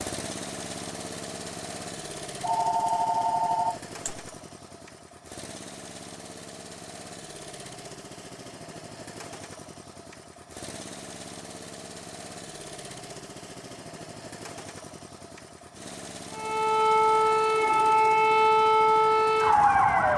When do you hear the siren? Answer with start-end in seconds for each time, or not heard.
16.3-20.1.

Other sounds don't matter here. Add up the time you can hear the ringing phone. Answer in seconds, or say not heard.
2 s.